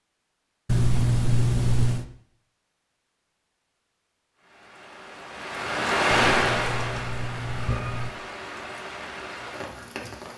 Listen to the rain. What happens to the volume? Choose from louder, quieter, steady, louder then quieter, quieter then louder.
louder then quieter.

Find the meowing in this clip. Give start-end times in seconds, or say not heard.
0.7-2.0, 6.1-8.1.